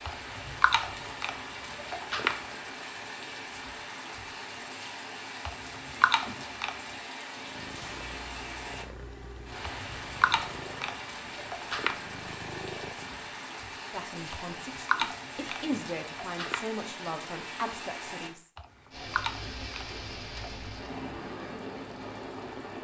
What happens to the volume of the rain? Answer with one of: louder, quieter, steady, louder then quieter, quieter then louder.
steady.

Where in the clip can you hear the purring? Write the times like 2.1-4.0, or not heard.
7.4-13.3.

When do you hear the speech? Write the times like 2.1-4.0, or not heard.
13.9-18.5.